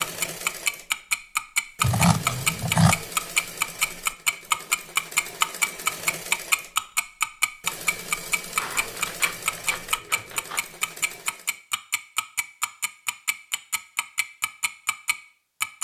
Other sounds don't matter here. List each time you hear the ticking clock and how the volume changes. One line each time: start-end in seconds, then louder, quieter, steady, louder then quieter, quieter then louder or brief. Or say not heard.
0.0-15.7 quieter.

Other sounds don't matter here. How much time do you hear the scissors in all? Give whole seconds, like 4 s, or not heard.
3 s.